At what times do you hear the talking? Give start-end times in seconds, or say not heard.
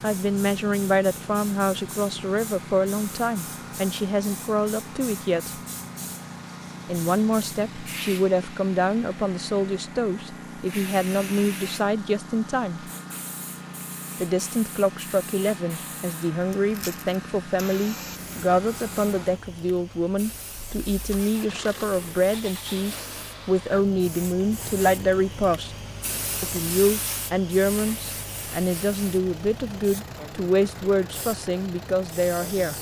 0.0-5.6, 6.8-12.8, 14.2-25.8, 26.4-32.7.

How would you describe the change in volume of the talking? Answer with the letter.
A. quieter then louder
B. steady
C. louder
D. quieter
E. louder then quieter
B.